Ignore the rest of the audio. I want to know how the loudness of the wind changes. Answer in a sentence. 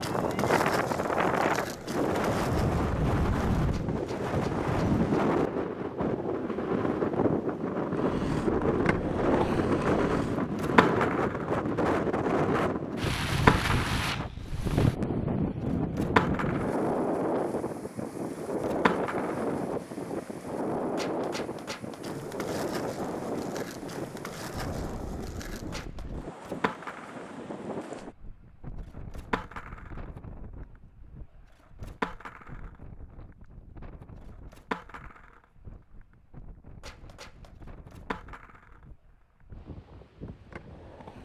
The volume of the wind goes down.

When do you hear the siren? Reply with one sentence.
You can't hear the siren here.